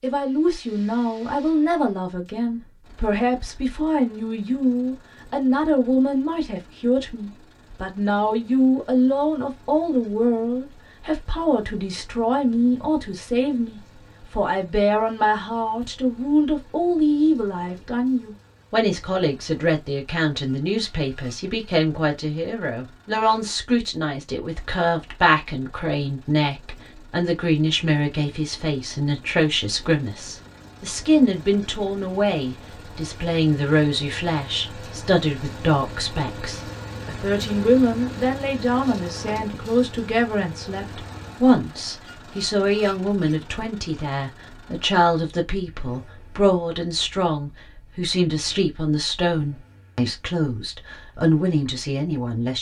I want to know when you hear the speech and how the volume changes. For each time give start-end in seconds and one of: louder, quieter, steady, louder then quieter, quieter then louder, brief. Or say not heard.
0.0-52.5 steady.